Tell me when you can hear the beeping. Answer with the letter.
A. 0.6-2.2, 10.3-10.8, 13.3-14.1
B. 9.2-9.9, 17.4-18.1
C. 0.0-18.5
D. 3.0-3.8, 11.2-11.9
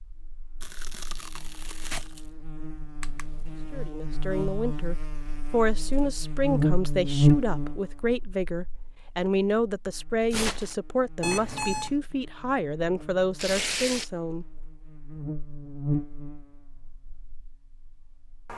D.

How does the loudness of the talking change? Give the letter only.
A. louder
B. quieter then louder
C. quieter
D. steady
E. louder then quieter
D.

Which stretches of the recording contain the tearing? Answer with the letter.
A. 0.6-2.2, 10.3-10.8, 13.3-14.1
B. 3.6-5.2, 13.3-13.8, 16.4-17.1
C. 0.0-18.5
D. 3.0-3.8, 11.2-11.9
A.